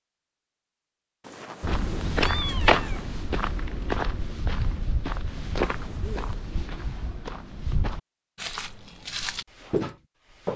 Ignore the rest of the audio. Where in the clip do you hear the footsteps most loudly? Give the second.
3 s.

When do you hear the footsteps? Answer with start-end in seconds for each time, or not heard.
1.6-10.5.